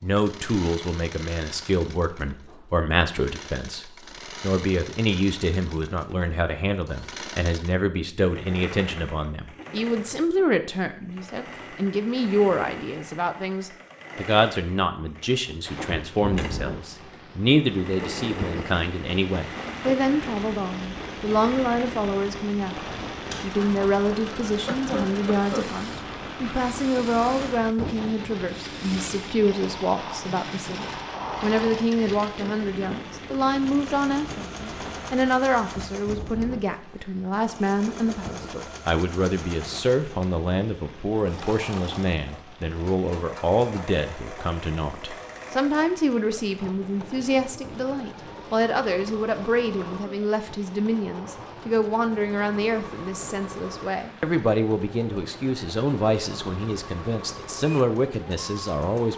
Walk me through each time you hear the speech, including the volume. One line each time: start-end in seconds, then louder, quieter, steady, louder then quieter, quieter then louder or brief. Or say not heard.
0.0-59.1 steady.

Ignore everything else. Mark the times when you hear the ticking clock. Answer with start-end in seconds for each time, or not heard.
not heard.